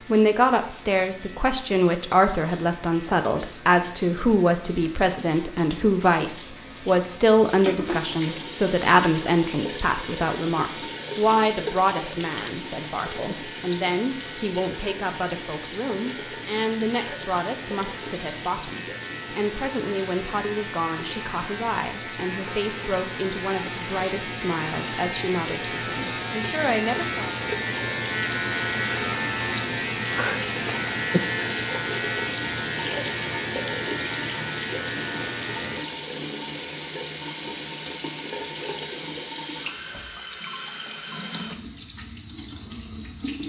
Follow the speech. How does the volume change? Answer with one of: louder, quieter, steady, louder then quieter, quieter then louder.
quieter.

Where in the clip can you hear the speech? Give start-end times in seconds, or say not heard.
0.1-27.2.